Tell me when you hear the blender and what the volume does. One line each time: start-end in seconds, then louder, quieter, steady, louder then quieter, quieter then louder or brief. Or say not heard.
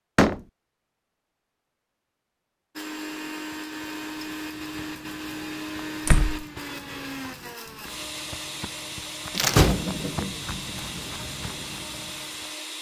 2.8-12.7 steady.